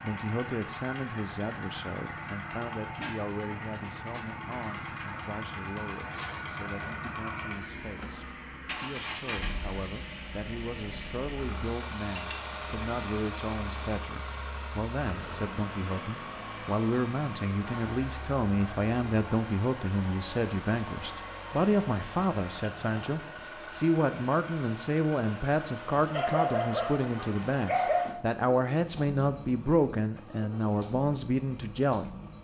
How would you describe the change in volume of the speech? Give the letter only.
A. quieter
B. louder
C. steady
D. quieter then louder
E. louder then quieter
B.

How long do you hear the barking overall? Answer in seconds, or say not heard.
2 s.